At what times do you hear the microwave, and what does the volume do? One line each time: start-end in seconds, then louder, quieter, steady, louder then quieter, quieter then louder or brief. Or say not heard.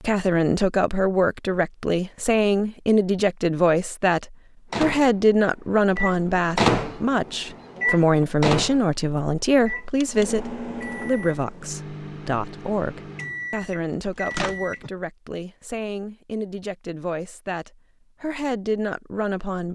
4.7-14.9 quieter.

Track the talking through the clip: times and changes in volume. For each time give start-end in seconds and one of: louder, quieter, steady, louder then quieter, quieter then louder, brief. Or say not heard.
0.0-19.7 quieter.